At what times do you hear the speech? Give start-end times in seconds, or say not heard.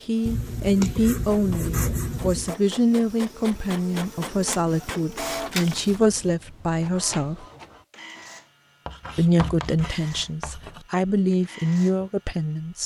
0.1-7.5, 9.2-12.8.